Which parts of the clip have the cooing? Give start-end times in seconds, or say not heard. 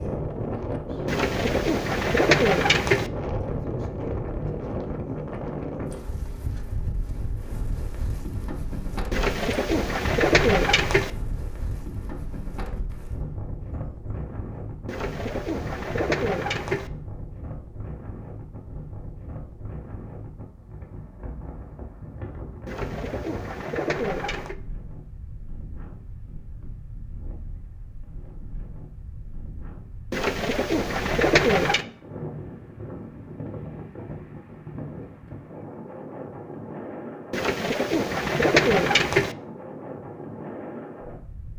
1.1-3.1, 9.1-11.1, 14.8-16.9, 22.6-24.6, 30.1-31.9, 37.3-39.4.